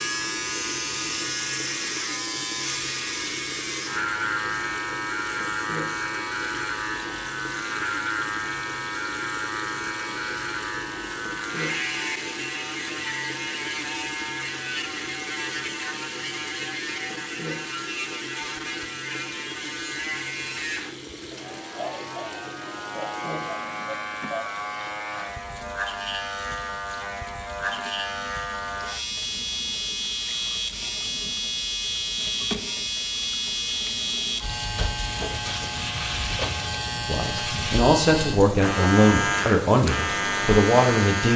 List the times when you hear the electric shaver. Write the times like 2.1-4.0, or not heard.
0.0-41.3.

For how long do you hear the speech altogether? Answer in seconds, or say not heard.
4 s.